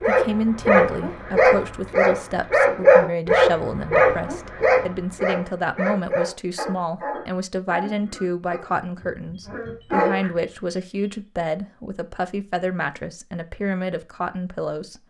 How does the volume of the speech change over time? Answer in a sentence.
The volume of the speech stays about the same.